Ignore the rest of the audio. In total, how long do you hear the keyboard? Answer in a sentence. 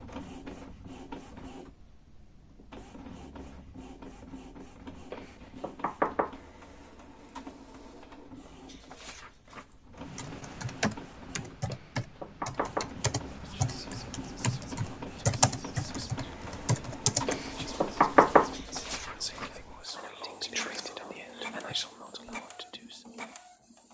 The keyboard can be heard for 8 seconds in total.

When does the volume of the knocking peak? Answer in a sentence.
The volume of the knocking peaks at 18 seconds.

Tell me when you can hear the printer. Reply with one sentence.
The printer can be heard from 0.0 to 23.8 s.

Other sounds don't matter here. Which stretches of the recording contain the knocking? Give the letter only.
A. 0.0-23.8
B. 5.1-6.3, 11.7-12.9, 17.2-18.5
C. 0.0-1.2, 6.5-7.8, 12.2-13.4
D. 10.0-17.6
B.